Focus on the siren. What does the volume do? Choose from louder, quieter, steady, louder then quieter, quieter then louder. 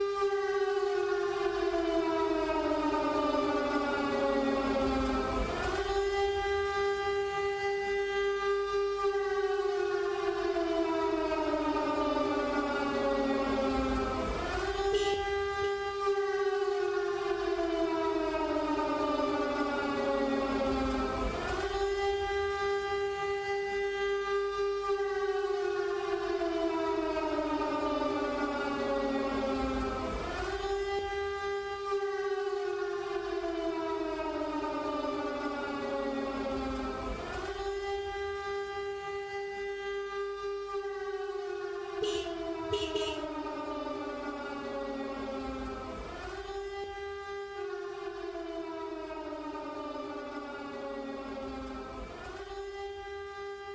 quieter.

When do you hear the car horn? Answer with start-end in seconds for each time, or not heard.
14.9-15.8, 42.0-43.3.